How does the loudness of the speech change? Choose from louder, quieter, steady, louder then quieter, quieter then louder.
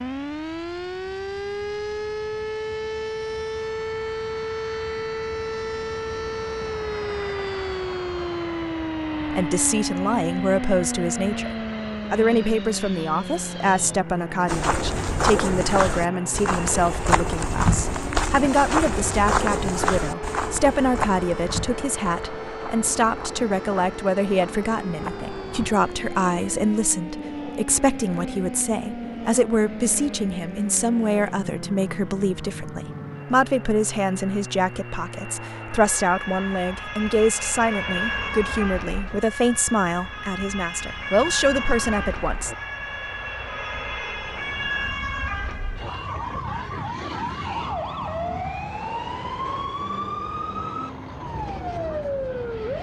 steady.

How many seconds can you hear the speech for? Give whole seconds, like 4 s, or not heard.
33 s.